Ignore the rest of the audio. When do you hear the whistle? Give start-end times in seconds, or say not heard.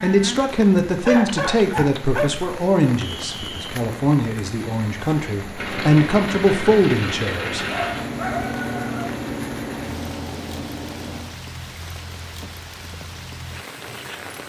3.0-3.7.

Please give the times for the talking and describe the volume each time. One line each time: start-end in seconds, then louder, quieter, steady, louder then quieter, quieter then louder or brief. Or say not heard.
0.0-7.7 quieter then louder.